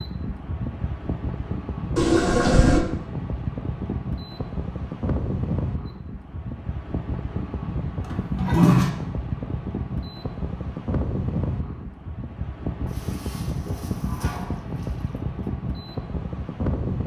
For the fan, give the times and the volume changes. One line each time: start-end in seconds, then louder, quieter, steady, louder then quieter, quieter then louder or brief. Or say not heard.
0.0-17.0 steady.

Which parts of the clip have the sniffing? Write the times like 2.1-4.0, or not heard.
not heard.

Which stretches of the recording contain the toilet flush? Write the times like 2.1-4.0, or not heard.
1.9-2.9, 8.1-8.9, 12.8-15.2.